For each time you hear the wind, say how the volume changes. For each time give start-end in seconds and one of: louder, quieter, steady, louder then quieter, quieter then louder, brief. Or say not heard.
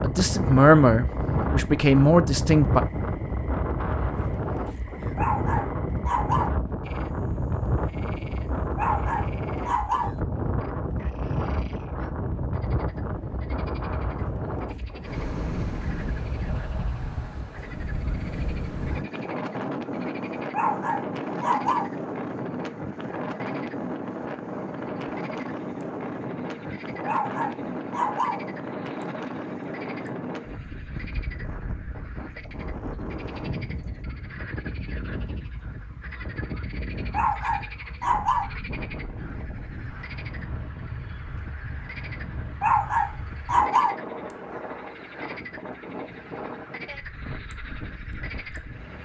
0.0-48.9 quieter.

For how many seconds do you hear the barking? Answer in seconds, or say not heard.
8 s.